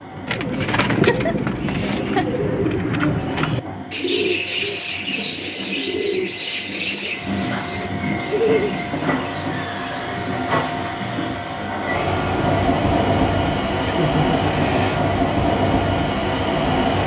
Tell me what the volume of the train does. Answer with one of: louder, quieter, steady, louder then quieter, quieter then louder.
louder.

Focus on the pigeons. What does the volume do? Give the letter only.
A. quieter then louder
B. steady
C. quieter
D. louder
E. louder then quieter
C.